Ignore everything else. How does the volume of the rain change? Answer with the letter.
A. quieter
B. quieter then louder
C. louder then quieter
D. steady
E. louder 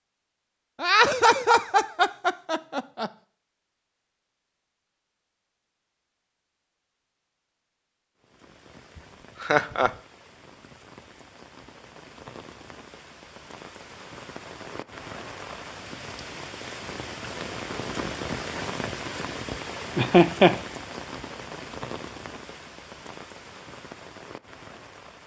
C.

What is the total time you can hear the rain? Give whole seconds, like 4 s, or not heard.
17 s.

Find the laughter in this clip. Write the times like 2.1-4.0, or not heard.
0.8-3.1, 9.4-9.9, 19.9-20.6.